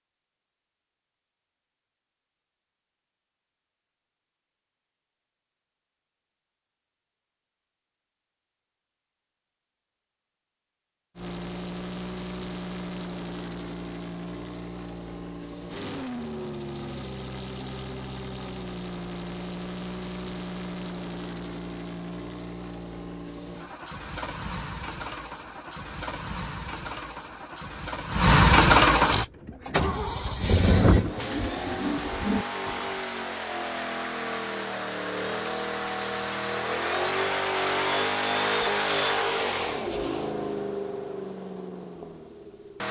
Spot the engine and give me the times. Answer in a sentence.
You can hear the engine from 11.2 to 42.8 s.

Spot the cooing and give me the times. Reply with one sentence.
The cooing can be heard from 29.1 to 32.9 s.